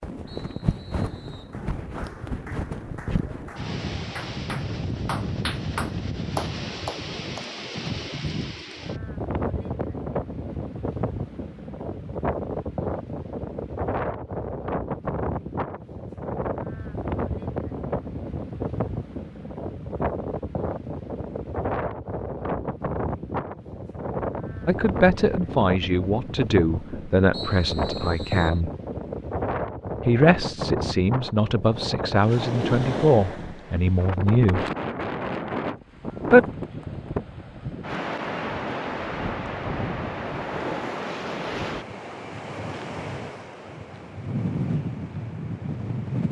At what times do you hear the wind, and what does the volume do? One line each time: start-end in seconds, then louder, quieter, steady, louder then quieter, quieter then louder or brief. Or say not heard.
0.0-46.2 steady.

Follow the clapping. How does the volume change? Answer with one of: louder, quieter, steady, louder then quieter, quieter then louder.
louder.